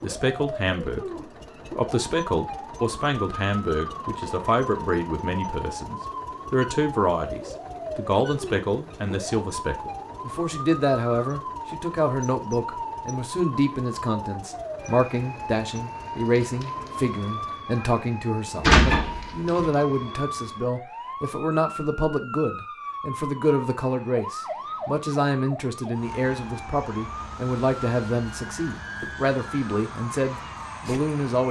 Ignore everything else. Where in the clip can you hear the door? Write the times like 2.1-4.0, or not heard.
18.6-19.7.